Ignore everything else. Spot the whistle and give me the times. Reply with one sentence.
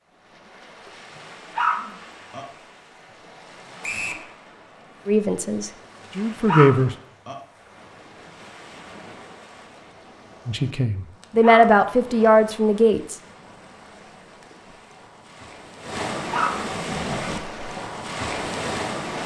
The whistle can be heard from 3.8 to 4.2 s.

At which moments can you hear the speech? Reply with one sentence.
You can hear the speech from 5.0 to 6.9 s and from 10.4 to 13.2 s.